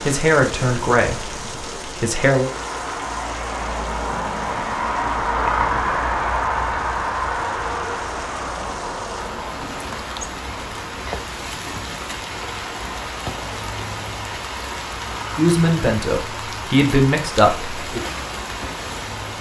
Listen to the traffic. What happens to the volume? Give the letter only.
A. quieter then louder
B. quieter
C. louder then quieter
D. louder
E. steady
C.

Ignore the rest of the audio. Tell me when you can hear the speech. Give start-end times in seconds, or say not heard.
0.0-2.5, 15.3-18.1.